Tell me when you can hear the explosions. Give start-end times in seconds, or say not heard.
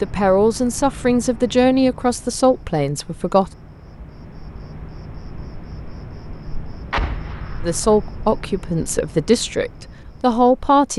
6.9-8.1.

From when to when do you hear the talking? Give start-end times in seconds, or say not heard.
0.0-3.5, 7.6-10.9.